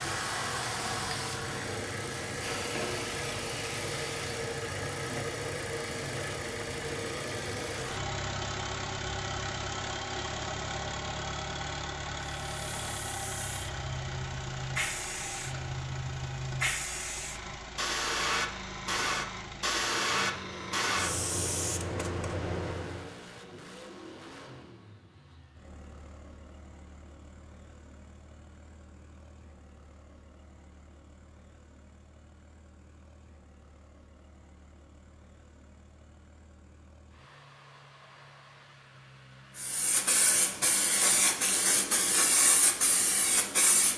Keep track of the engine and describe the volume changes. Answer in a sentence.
The volume of the engine goes down.